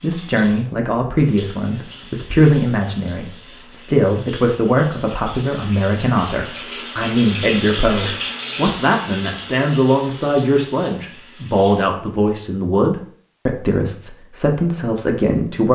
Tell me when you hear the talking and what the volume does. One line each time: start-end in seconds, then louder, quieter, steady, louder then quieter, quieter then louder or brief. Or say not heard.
0.0-15.6 steady.